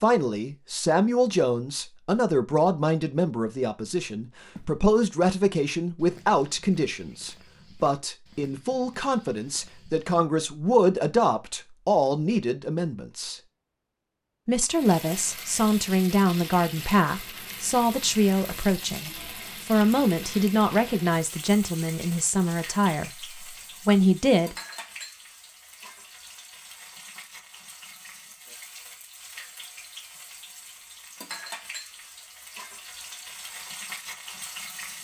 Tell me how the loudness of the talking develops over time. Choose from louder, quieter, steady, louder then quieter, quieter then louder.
steady.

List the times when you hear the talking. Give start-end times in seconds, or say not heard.
0.0-13.4, 14.4-24.6.